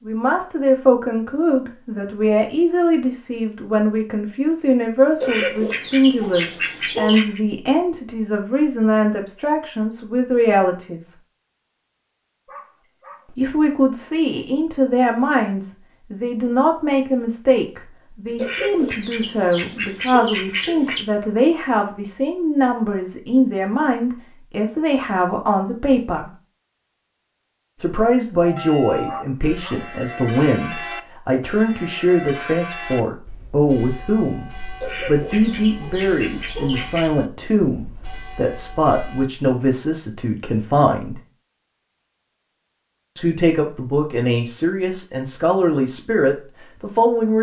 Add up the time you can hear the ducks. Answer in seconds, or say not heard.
7 s.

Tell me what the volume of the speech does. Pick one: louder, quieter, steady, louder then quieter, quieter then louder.
steady.